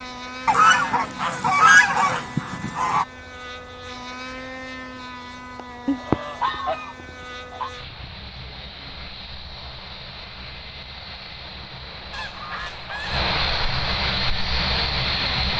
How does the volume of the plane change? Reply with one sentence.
The volume of the plane goes up.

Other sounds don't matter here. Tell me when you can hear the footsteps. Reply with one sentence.
The footsteps can't be heard in this clip.